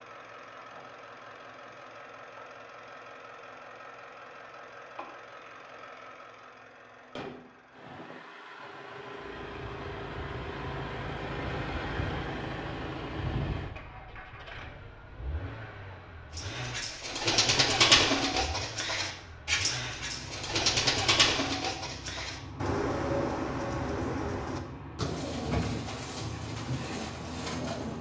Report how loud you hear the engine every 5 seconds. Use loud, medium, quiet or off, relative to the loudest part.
medium, medium, loud, medium, medium, medium.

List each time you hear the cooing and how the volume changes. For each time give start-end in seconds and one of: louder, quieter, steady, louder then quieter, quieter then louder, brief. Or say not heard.
16.4-27.9 quieter.